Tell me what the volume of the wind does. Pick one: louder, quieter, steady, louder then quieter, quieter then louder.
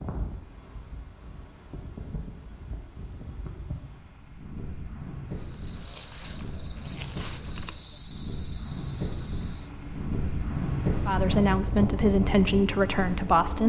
louder.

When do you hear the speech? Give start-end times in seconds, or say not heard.
11.1-13.6.